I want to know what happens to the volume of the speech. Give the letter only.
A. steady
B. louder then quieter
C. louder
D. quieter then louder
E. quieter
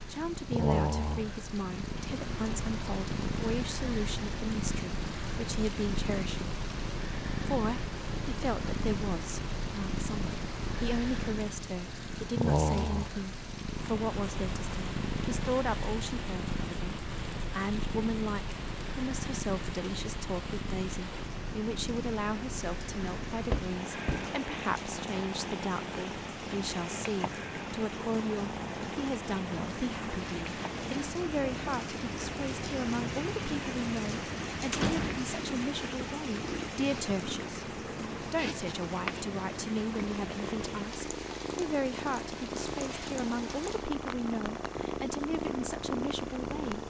A.